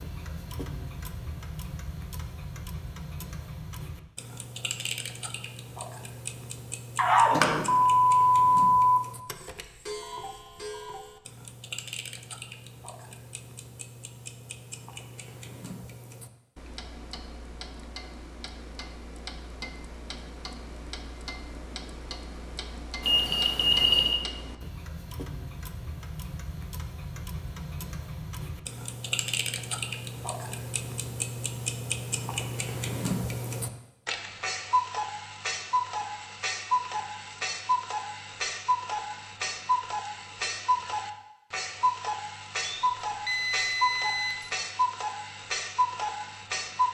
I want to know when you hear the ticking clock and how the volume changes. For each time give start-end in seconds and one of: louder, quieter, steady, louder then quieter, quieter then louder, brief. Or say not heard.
0.0-46.8 louder.